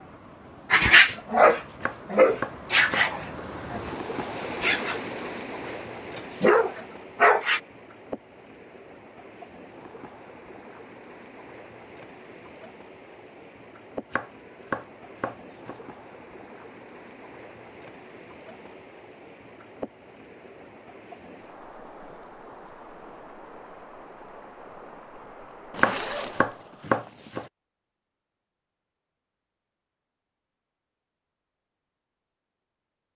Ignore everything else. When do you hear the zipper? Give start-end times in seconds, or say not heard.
25.7-27.4.